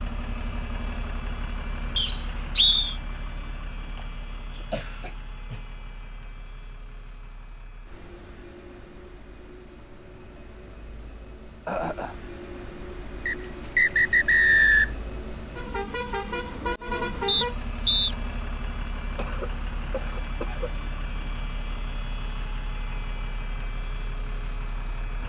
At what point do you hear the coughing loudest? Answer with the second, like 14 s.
12 s.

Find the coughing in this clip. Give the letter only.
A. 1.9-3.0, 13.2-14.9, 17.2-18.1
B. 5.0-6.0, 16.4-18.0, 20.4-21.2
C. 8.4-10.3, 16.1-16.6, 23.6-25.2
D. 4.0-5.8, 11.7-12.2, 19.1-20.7
D.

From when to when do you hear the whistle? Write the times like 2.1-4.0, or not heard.
1.9-3.0, 13.2-14.9, 17.2-18.1.